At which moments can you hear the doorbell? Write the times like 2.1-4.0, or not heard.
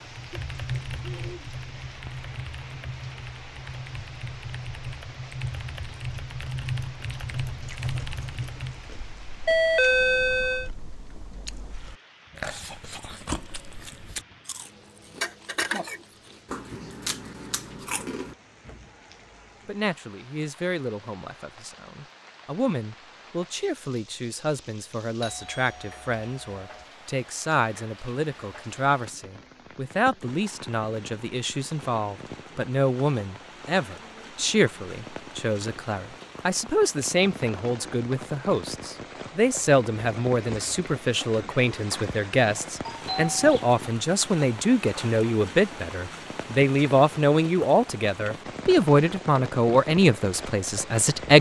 9.4-10.7, 25.2-26.9, 42.9-43.8.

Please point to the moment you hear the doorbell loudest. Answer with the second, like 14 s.
10 s.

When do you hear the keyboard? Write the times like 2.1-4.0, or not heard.
0.0-8.9.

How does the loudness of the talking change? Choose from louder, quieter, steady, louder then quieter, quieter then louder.
louder.